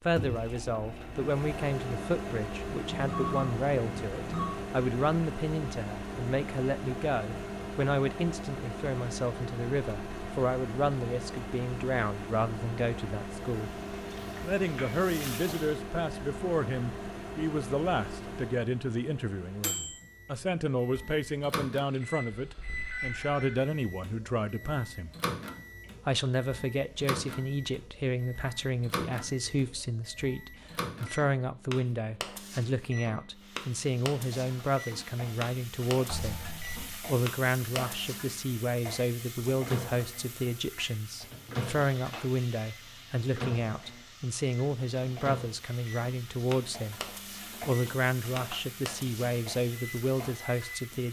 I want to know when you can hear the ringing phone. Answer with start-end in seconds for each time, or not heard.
2.9-4.5, 22.4-23.6, 36.0-37.0.